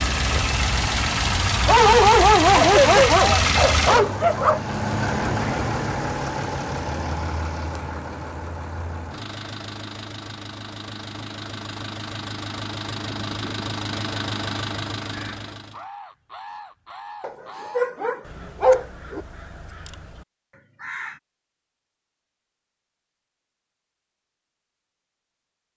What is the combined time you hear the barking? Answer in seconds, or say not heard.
5 s.